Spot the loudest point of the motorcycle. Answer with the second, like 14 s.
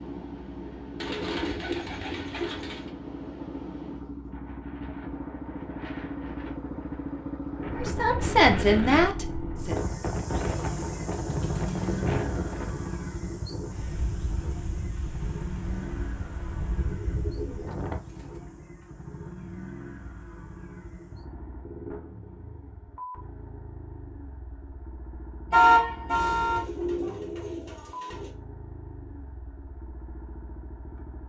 12 s.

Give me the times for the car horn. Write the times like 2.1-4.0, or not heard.
25.5-26.6.